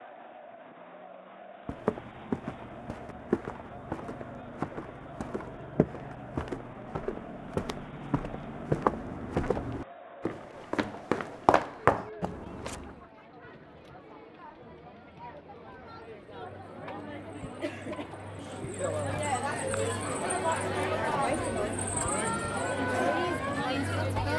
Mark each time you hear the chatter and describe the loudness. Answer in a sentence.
You can hear the chatter from 0.0 to 24.3 s, getting louder.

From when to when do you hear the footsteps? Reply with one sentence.
The footsteps can be heard from 1.6 to 12.9 s.